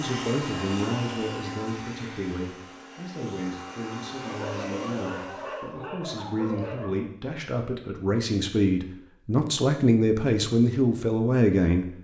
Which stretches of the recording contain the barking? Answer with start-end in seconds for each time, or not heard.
4.2-7.0.